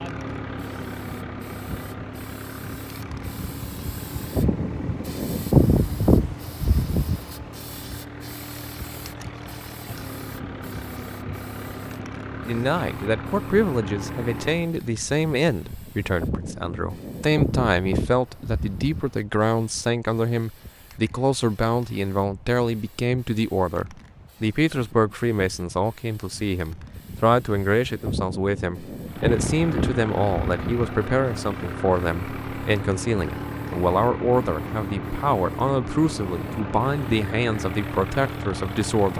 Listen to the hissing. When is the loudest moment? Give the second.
6 s.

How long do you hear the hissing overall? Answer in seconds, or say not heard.
39 s.